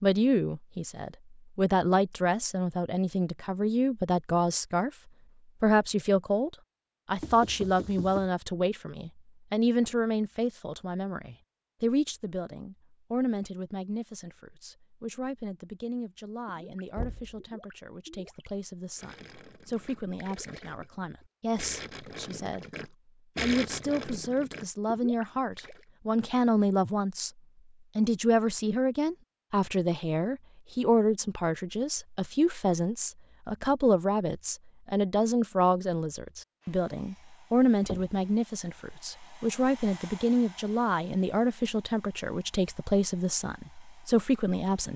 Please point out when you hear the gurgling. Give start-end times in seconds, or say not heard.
16.4-25.9.